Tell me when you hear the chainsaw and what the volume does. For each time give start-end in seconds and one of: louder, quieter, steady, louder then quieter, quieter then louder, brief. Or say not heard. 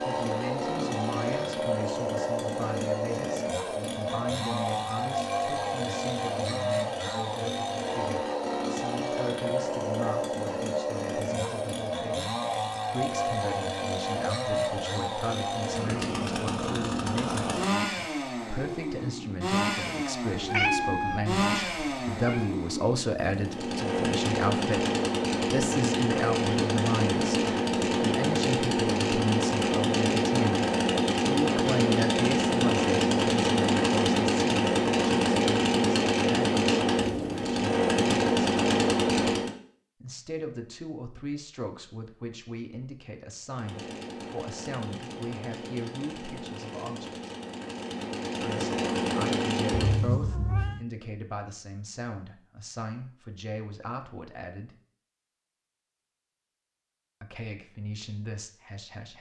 0.0-39.5 louder
43.5-50.0 louder.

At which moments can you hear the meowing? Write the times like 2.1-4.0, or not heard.
20.3-22.4, 49.7-50.9.